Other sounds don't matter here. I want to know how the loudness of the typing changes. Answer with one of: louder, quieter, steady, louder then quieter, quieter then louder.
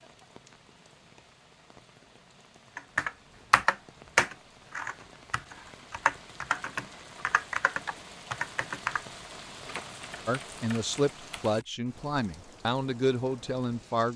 quieter.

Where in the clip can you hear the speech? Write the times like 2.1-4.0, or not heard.
10.2-14.1.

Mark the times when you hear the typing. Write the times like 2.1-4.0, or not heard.
2.8-11.6.